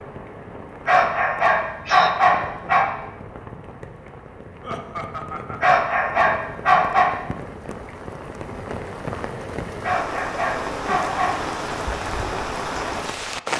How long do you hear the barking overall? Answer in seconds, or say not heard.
5 s.